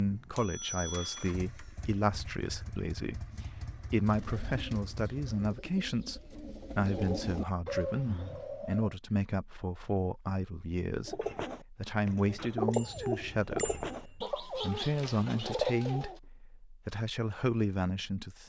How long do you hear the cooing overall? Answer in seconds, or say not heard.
10 s.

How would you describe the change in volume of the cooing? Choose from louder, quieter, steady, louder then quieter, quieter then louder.
louder.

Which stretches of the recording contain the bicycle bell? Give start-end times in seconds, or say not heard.
0.3-1.4, 12.7-14.3.